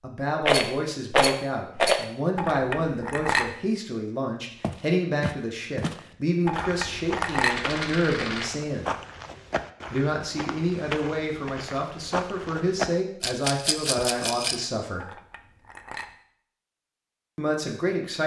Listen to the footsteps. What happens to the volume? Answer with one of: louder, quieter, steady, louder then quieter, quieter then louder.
steady.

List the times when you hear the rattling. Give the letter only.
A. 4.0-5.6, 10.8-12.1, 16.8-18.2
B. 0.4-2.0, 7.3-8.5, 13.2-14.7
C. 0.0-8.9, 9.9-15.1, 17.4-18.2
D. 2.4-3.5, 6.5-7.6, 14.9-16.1
B.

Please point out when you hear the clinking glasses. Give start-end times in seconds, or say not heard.
2.4-3.5, 6.5-7.6, 14.9-16.1.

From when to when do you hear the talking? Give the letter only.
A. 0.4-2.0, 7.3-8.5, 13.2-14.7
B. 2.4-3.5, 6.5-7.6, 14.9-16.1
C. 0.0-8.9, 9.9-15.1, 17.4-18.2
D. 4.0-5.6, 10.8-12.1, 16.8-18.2
C.